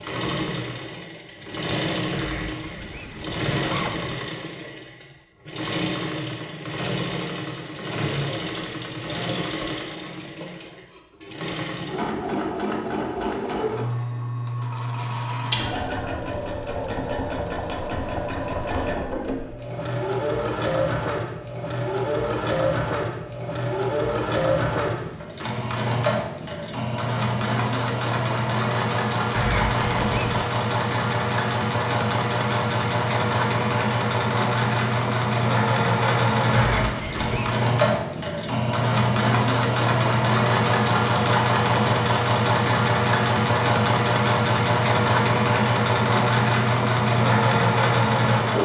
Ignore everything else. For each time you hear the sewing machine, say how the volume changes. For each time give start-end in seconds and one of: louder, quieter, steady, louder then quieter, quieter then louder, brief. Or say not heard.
0.0-48.6 louder.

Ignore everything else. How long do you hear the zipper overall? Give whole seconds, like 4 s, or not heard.
4 s.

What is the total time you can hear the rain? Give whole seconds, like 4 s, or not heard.
not heard.